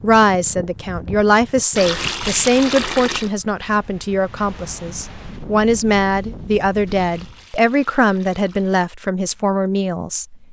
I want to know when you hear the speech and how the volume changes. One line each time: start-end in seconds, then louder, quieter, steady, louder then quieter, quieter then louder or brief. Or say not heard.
0.0-10.3 steady.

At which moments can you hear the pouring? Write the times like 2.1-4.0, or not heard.
1.8-3.3, 6.8-8.8.